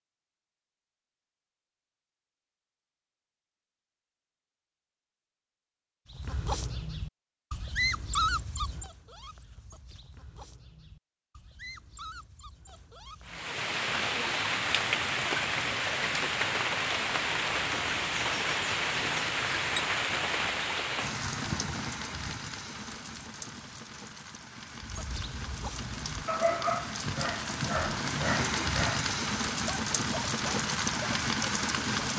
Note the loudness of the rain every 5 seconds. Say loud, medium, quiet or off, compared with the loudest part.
off, off, loud, loud, medium, loud, loud.